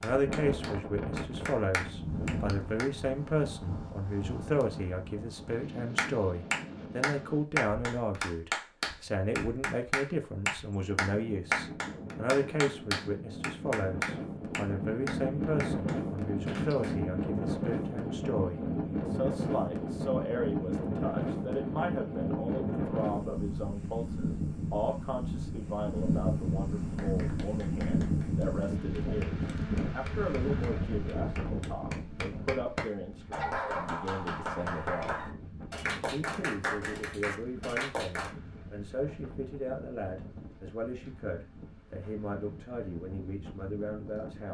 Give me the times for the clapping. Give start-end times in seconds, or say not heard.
0.0-2.9, 6.0-16.9, 26.9-38.3.